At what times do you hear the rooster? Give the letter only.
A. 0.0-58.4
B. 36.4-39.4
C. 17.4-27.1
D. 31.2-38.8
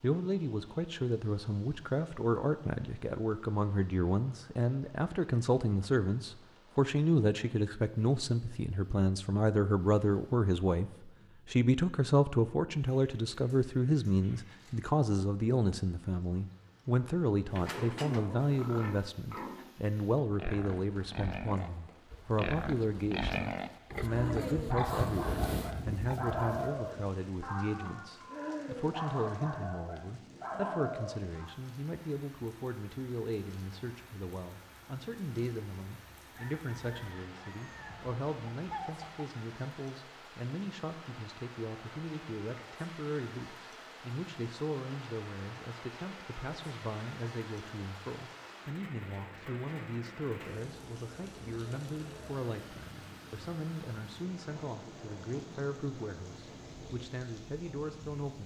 B.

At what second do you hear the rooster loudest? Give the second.
39 s.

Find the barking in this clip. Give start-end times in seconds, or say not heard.
24.1-31.6.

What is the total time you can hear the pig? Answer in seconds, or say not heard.
10 s.